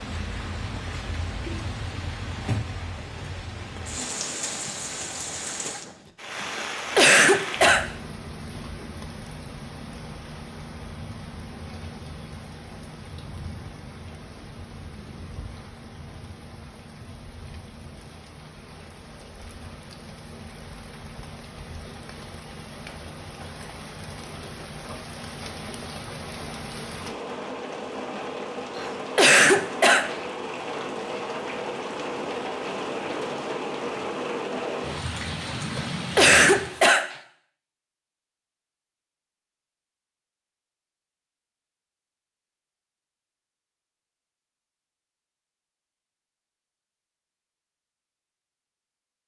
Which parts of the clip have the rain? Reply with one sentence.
You can hear the rain from 0.0 to 37.0 s.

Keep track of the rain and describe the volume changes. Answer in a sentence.
The volume of the rain goes down, then up.